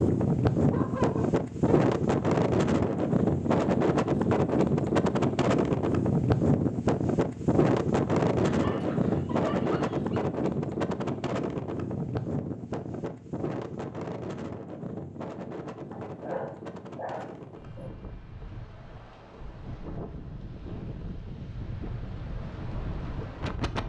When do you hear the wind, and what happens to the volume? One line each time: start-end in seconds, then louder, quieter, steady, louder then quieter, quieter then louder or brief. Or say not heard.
0.0-23.8 quieter.